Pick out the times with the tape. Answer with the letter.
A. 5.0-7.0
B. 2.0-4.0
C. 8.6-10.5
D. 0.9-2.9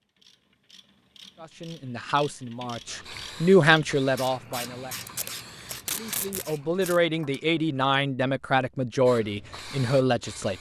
A.